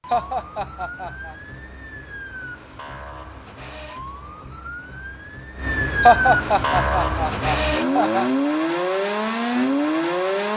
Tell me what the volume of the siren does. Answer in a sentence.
The loudness of the siren goes up.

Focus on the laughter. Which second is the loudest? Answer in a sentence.
The loudest moment of the laughter is at 6 seconds.